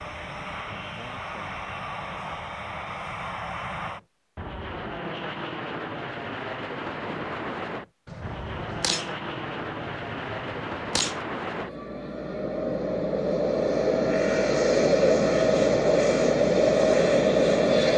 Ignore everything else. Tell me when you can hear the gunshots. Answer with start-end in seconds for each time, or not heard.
8.1-11.2.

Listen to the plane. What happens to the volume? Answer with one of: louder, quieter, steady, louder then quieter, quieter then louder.
louder.